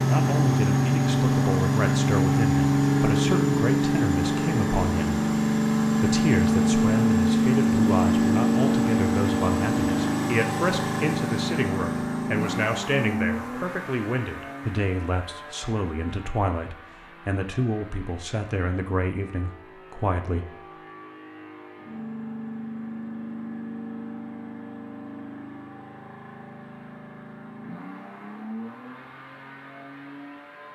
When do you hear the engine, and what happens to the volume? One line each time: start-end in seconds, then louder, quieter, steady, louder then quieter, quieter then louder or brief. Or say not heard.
0.0-30.7 quieter.